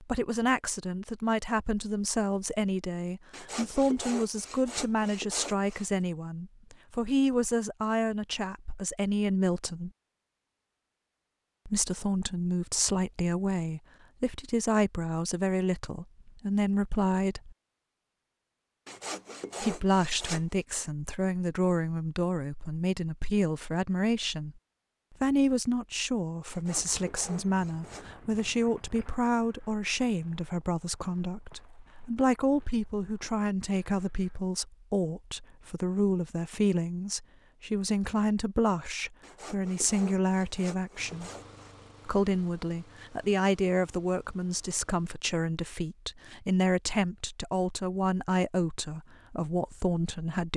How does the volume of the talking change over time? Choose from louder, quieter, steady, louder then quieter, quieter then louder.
steady.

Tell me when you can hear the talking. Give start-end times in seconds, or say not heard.
0.0-9.9, 11.7-17.6, 19.6-24.6, 25.2-41.3, 42.0-50.5.